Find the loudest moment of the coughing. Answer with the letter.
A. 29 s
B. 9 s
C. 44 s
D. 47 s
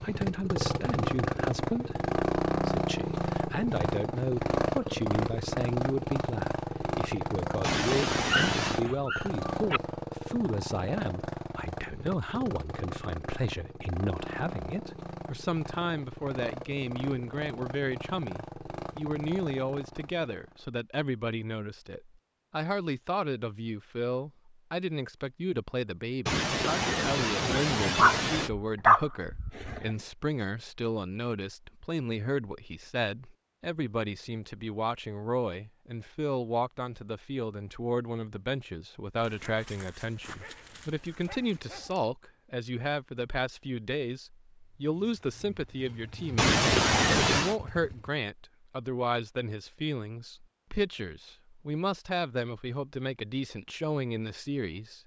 D.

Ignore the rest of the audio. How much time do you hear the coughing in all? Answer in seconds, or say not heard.
5 s.